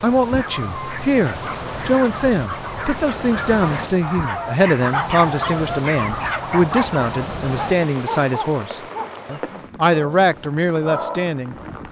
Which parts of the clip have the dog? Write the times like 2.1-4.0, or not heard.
0.3-11.3.